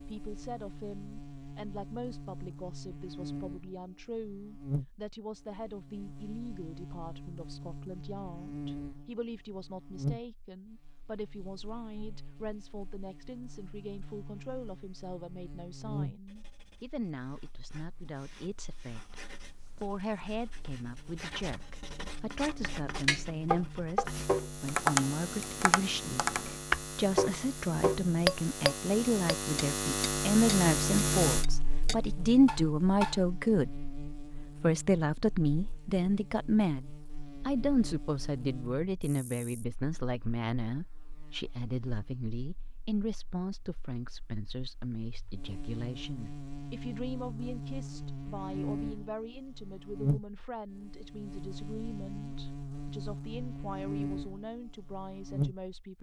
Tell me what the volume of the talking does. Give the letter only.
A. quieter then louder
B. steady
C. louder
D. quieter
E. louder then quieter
E.